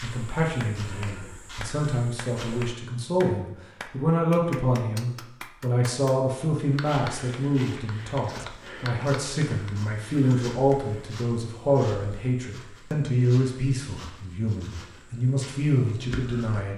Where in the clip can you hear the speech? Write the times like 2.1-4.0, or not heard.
0.0-16.7.